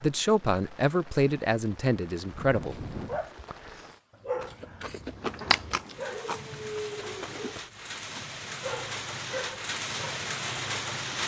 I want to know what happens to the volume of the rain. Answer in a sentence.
The volume of the rain goes up.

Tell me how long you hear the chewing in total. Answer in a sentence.
You can hear the chewing for 3 seconds altogether.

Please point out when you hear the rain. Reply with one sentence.
You can hear the rain from 0.0 to 11.2 s.